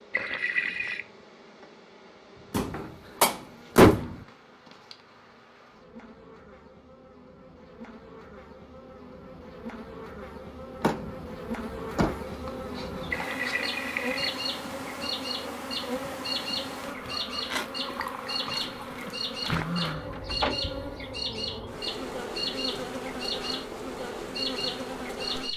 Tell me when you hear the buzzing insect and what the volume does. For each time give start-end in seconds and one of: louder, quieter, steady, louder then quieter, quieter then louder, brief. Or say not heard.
0.0-25.5 louder.